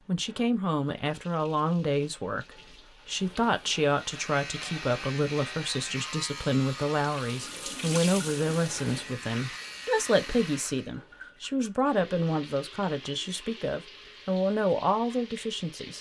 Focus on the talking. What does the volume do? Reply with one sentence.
The volume of the talking stays about the same.